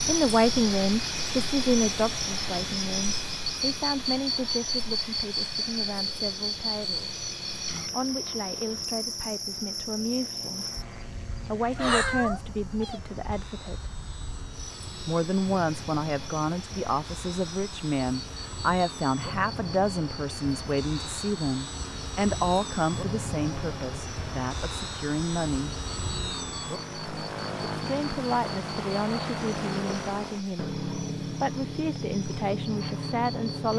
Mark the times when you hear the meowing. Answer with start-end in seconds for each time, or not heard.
11.8-13.0.